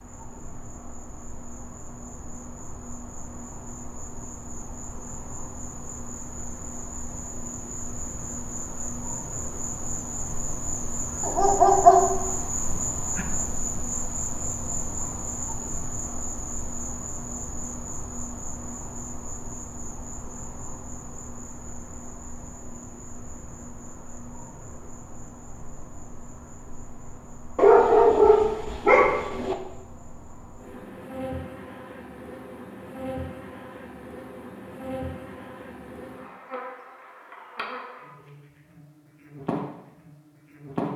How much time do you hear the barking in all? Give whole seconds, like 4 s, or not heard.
3 s.